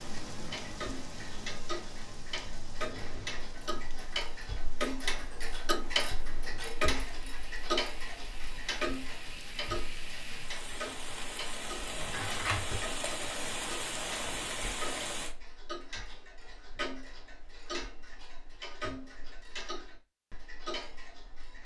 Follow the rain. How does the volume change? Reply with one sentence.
The loudness of the rain goes down, then up.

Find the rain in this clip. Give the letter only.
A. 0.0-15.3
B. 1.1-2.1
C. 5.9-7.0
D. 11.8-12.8
A.